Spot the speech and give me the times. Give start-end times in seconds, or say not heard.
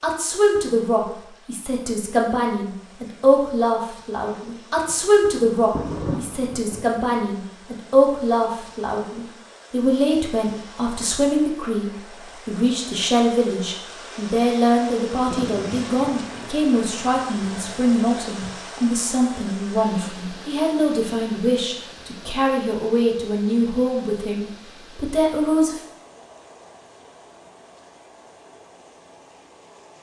0.0-25.8.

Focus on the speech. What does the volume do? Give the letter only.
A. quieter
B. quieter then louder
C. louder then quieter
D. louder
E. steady
E.